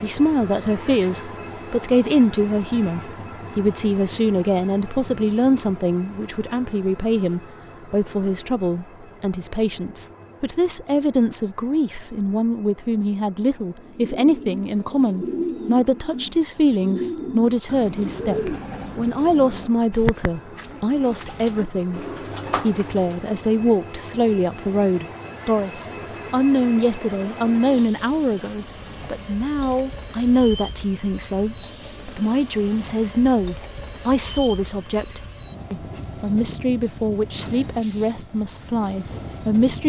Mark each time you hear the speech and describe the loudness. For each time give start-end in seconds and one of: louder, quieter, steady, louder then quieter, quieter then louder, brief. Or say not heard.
0.0-39.8 steady.